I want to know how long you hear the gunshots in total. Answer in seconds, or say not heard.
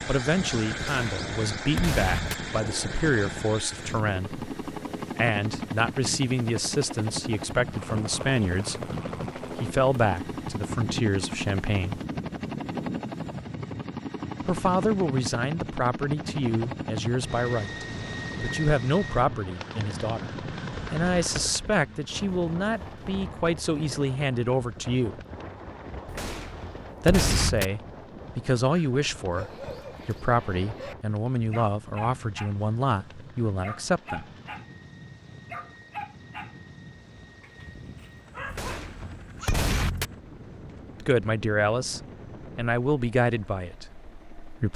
5 s.